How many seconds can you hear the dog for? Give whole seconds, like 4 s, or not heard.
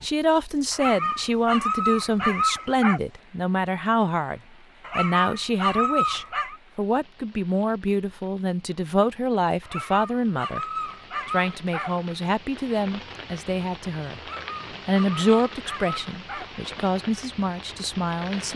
9 s.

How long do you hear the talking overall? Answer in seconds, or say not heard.
17 s.